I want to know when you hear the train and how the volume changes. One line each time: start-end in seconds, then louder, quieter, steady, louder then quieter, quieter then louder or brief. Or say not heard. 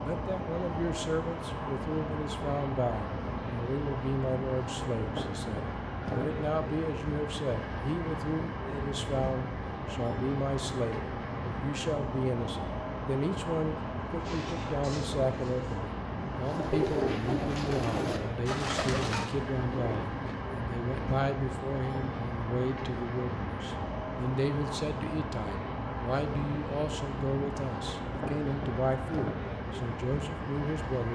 0.0-31.1 steady.